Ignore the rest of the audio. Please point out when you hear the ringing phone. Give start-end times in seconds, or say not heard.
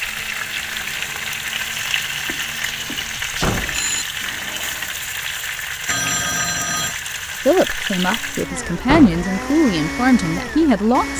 2.2-4.0, 5.8-7.0.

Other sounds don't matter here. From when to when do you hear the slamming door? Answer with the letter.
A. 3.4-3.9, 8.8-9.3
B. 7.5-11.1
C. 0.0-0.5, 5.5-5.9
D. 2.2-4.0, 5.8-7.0
A.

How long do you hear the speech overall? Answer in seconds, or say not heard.
4 s.